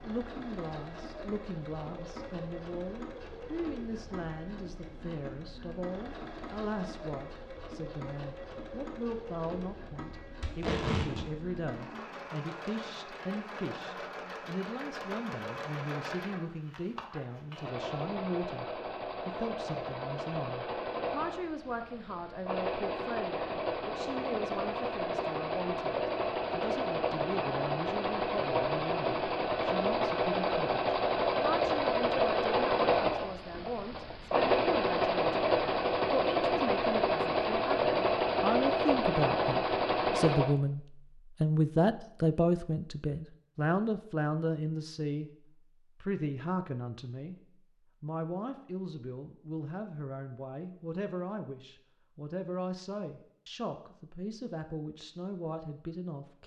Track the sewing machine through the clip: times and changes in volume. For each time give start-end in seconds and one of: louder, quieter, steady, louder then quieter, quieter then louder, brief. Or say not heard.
0.0-40.5 louder.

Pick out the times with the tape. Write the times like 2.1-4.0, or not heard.
10.4-11.2.